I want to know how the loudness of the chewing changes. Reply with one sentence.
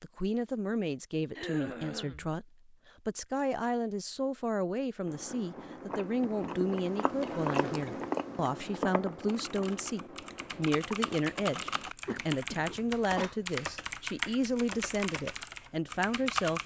The loudness of the chewing goes up, then down.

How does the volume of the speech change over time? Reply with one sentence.
The loudness of the speech stays about the same.